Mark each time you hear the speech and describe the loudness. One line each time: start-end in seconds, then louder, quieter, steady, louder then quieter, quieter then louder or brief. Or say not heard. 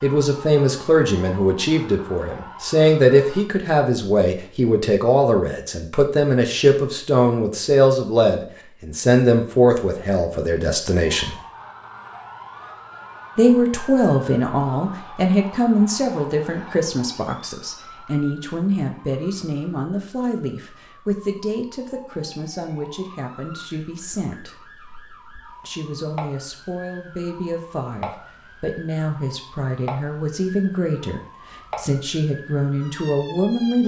0.0-11.4 steady
13.3-24.6 quieter
25.6-33.8 louder.